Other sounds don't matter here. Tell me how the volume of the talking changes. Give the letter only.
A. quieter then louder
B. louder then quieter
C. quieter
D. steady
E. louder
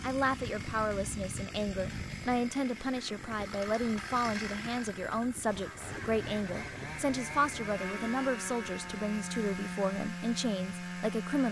D.